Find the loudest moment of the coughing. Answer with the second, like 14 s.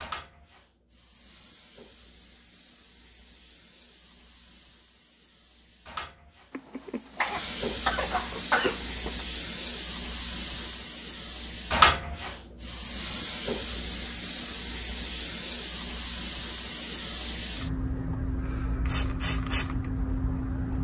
9 s.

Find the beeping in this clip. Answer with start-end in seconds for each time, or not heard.
not heard.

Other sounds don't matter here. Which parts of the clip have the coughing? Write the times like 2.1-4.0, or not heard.
6.5-9.2.